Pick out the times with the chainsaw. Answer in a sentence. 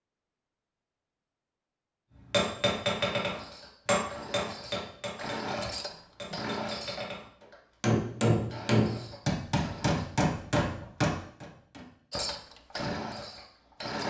The chainsaw can be heard from 3.2 to 10.1 s and from 12.1 to 14.0 s.